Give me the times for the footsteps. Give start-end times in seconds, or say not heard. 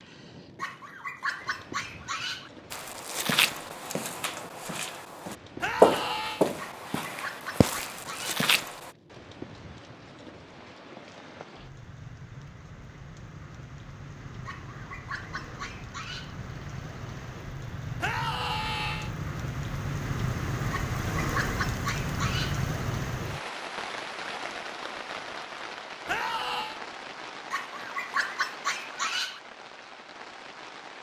2.7-8.9.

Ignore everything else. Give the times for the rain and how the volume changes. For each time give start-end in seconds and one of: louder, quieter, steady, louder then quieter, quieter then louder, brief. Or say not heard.
0.0-30.9 louder then quieter.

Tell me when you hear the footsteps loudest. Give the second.
6 s.